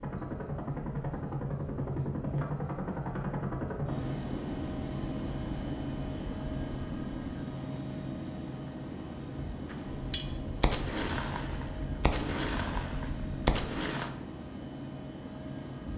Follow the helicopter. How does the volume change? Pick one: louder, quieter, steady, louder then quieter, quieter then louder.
quieter.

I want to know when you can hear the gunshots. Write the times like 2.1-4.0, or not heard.
9.7-14.1.